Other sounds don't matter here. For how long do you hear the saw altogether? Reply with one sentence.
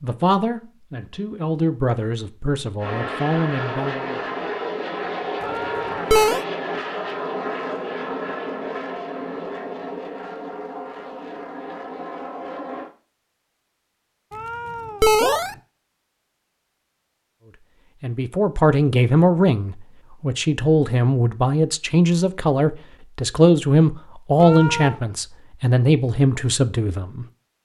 You can't hear the saw here.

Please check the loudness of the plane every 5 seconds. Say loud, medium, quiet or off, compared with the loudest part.
loud, loud, medium, off, off, off.